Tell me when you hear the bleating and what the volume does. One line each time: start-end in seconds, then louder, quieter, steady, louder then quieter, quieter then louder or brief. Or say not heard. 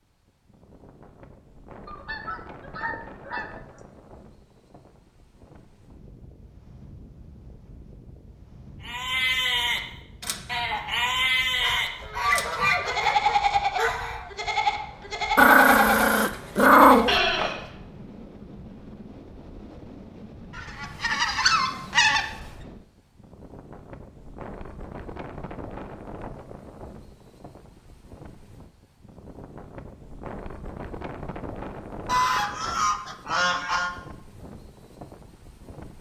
8.8-17.7 steady.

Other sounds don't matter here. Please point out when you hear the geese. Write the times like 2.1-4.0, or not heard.
1.9-3.8, 11.6-14.3, 20.6-22.2, 32.0-33.9.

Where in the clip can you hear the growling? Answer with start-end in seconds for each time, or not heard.
15.3-17.2.